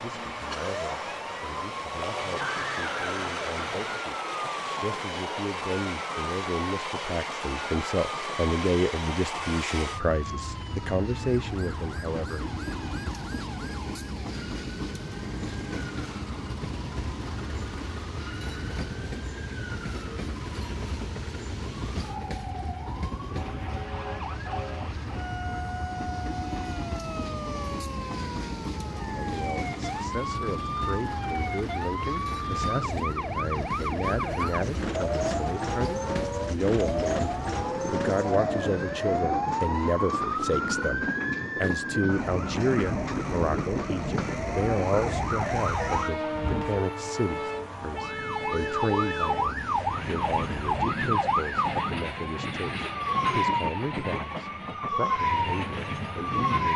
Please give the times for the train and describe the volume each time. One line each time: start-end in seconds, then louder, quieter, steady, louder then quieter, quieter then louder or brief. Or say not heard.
0.0-56.7 steady.